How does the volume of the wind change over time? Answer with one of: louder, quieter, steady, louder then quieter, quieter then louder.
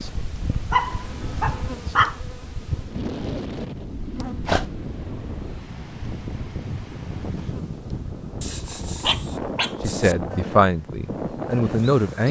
louder.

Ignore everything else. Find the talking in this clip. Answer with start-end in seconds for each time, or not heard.
9.8-12.2.